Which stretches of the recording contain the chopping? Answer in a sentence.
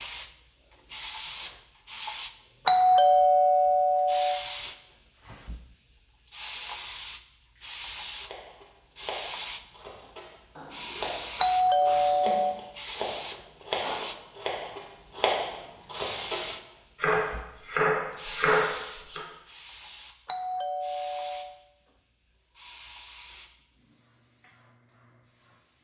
You can hear the chopping from 8.2 to 19.2 s.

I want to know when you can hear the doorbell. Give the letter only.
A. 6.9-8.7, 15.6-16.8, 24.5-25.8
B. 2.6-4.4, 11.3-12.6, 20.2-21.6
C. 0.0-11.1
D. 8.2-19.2
B.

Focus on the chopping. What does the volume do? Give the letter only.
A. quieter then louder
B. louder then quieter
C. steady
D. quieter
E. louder
E.